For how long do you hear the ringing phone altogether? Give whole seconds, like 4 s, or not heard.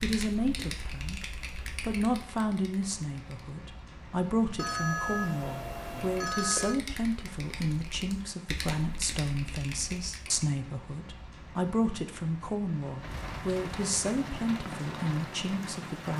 2 s.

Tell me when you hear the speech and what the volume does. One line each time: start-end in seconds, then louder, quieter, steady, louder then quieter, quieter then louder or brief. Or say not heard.
0.0-16.1 steady.